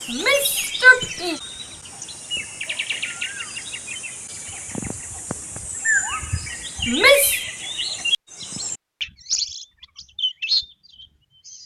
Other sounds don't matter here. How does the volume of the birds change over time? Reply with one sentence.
The loudness of the birds goes up.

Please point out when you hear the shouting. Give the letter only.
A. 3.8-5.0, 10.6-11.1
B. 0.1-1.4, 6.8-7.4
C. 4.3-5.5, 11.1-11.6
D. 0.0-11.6
B.